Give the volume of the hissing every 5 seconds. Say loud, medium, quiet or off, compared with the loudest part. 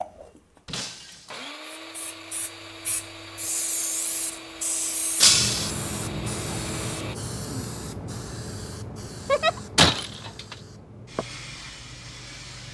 loud, loud, medium.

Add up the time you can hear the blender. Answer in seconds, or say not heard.
7 s.